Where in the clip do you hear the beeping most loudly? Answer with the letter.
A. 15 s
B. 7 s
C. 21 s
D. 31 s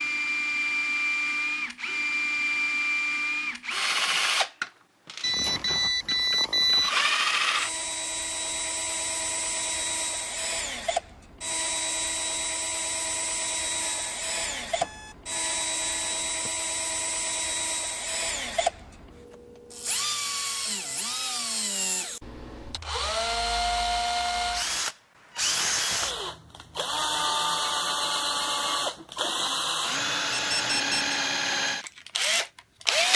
B.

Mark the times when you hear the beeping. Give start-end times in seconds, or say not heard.
5.2-7.0, 13.8-16.5, 30.3-30.9.